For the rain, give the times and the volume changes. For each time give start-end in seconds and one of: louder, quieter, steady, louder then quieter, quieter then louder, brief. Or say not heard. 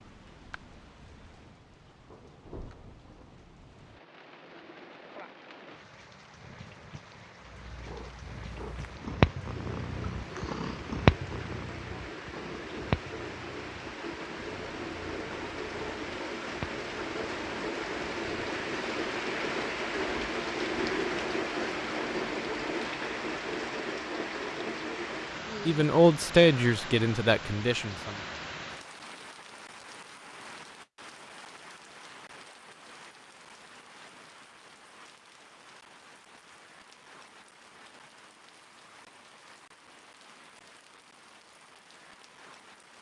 0.0-42.9 louder then quieter.